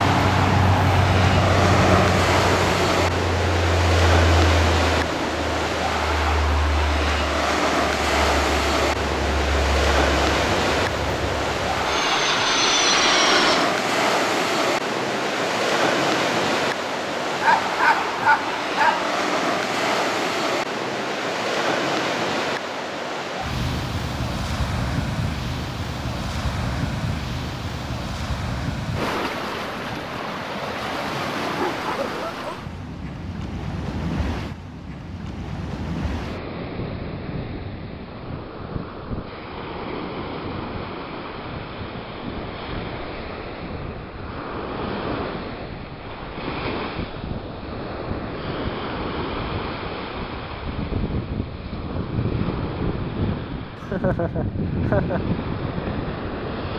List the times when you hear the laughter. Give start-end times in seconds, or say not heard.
53.8-55.2.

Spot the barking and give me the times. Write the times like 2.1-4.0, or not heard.
17.4-19.1, 31.4-32.7.